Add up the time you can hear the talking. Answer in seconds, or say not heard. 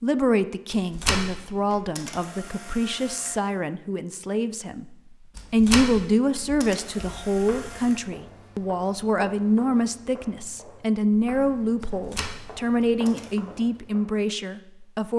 15 s.